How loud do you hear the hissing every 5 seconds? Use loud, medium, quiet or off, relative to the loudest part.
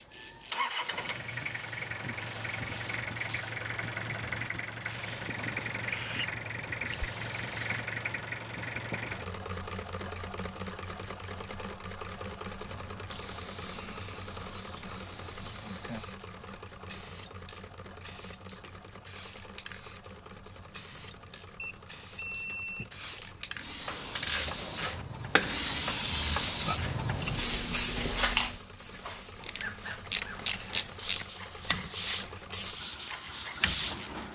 quiet, quiet, quiet, quiet, medium, loud, medium.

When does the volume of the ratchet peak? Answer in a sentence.
The volume of the ratchet peaks at 31 seconds.